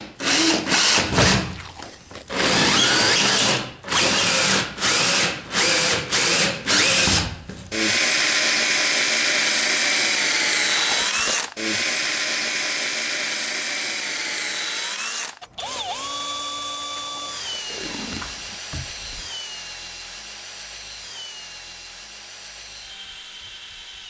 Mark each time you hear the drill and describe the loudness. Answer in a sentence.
You can hear the drill from 0.0 to 24.0 s, getting quieter.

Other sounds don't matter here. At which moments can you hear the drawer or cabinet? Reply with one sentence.
The drawer or cabinet can be heard from 18.0 to 19.3 s.